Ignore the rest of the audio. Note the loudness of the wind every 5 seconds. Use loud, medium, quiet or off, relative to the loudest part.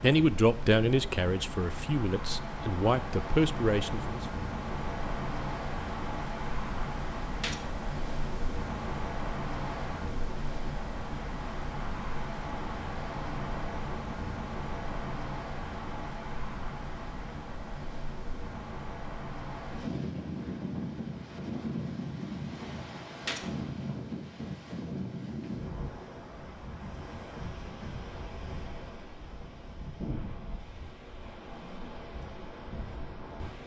loud, loud, loud, loud, loud, medium, medium.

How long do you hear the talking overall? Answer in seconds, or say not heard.
4 s.